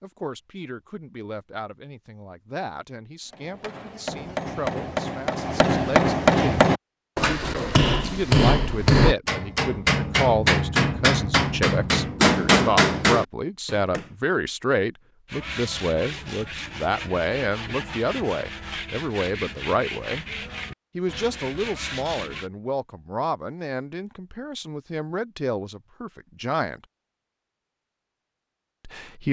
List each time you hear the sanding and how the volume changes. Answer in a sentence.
You can hear the sanding from 15.2 to 22.5 s, at a steady volume.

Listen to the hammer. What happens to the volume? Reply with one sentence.
The loudness of the hammer goes up.